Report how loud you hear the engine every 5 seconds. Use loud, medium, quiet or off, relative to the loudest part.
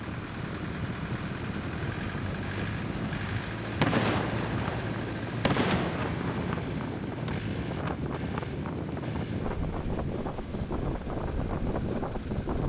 loud, loud, medium.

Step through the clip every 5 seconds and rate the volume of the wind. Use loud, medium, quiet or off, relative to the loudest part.
medium, loud, loud.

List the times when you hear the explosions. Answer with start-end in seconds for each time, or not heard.
3.8-7.3.